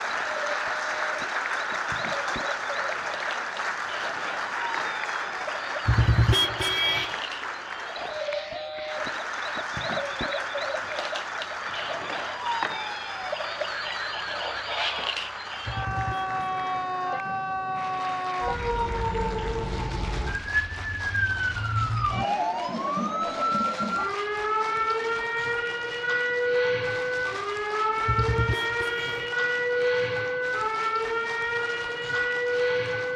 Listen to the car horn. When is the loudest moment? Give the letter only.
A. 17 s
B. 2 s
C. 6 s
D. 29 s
C.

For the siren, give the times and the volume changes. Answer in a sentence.
The siren can be heard from 0.0 to 33.1 s, getting louder.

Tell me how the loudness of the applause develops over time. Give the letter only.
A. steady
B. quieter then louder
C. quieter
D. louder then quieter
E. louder
C.